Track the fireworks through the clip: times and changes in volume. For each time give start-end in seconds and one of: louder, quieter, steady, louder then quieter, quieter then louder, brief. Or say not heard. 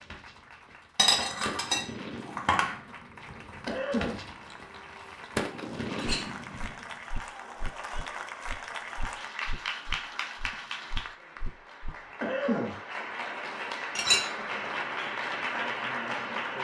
0.0-7.0 quieter then louder.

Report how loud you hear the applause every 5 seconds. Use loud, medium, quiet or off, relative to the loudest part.
quiet, medium, medium, loud.